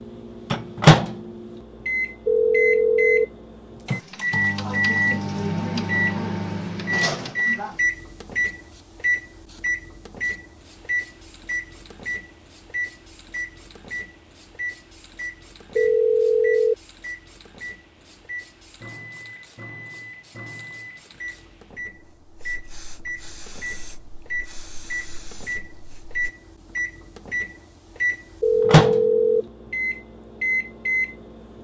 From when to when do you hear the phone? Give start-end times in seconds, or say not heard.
2.2-3.2, 15.8-16.8, 28.4-29.4.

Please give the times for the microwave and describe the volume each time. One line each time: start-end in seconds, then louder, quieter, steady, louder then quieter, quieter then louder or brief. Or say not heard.
0.0-31.1 quieter then louder.